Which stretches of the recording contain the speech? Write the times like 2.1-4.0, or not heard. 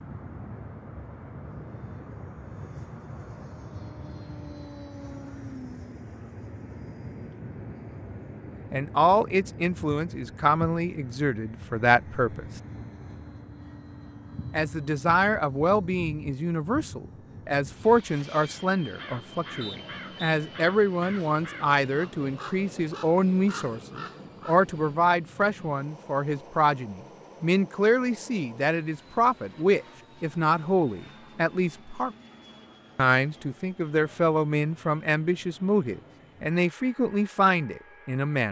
8.7-12.4, 14.5-32.1, 33.0-38.4.